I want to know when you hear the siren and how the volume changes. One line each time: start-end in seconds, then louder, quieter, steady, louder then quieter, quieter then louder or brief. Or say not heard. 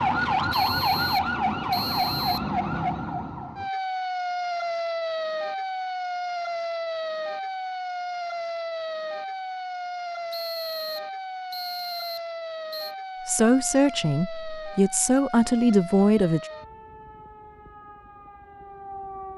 0.0-19.3 quieter.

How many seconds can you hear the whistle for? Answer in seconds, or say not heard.
5 s.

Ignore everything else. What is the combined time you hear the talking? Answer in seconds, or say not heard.
3 s.